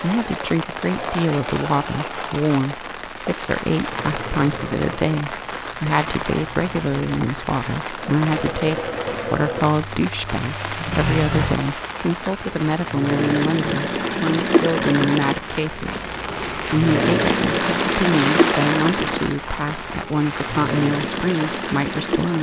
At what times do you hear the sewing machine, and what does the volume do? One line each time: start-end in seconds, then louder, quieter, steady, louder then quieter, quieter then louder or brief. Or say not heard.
0.0-22.3 louder.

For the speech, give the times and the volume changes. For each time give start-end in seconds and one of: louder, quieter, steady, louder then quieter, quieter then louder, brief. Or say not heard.
0.0-22.3 steady.